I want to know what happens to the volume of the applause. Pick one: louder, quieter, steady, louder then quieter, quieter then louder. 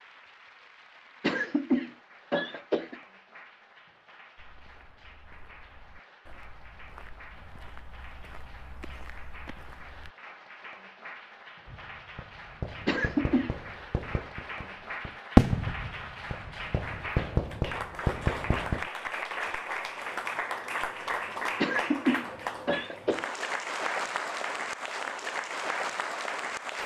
louder.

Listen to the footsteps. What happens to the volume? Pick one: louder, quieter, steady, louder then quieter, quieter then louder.
louder.